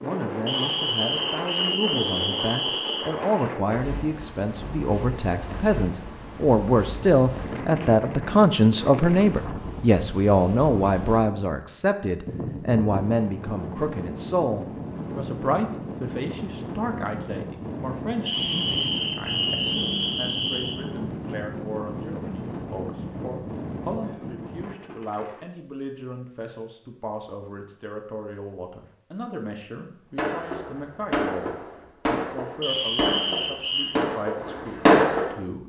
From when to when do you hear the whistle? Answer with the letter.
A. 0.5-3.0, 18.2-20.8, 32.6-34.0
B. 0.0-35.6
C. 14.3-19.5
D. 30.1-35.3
A.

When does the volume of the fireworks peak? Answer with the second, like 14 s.
35 s.